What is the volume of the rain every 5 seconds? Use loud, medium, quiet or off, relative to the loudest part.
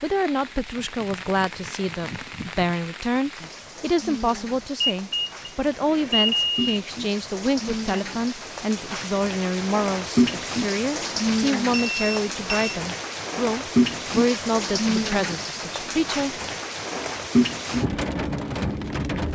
quiet, medium, loud, loud.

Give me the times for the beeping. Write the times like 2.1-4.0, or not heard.
4.8-6.8, 11.7-12.8.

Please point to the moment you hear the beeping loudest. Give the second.
6 s.